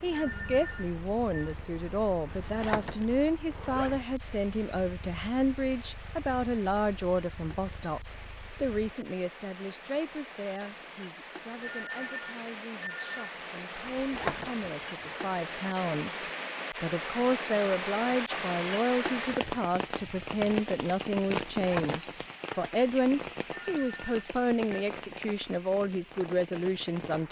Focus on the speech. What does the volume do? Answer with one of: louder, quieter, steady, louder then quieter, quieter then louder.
quieter then louder.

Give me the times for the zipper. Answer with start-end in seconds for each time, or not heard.
2.3-4.0, 13.8-15.3, 21.4-22.0.